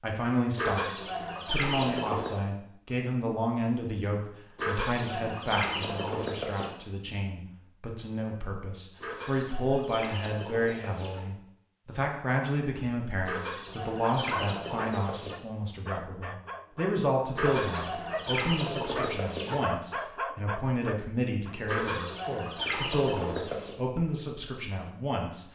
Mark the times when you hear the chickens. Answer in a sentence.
The chickens can be heard from 0.6 to 2.5 s, from 4.5 to 6.7 s, from 9.0 to 11.2 s, from 13.2 to 15.3 s, from 17.4 to 19.6 s and from 21.6 to 23.8 s.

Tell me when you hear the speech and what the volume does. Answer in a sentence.
The speech can be heard from 0.0 to 25.5 s, at a steady volume.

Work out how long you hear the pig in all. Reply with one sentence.
You can't hear the pig here.